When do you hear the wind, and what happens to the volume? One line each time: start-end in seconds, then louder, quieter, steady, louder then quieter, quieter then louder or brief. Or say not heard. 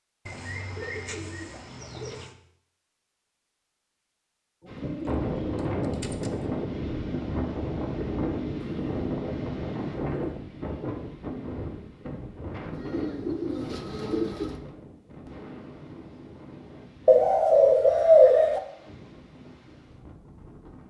4.7-20.8 quieter.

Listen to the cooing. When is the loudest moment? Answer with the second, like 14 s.
18 s.